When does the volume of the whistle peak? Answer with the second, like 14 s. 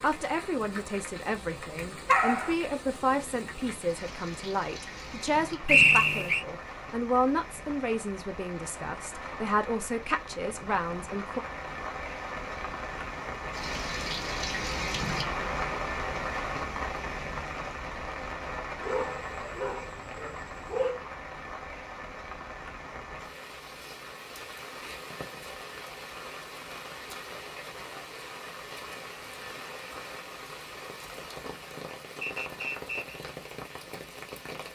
6 s.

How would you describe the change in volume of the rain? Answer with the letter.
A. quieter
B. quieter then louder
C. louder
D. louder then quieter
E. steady
D.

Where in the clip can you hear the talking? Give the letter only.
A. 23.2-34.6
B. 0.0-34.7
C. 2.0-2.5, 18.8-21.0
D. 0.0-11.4
D.